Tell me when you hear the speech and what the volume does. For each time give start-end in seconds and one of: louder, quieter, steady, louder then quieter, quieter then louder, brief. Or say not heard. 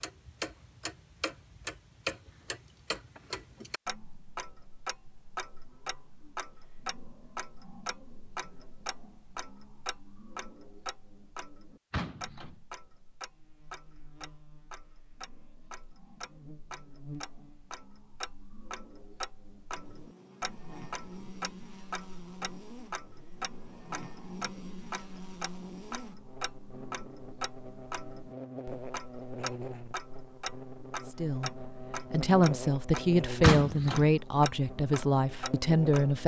31.1-36.2 steady.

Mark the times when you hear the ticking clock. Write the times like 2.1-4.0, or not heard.
0.0-36.2.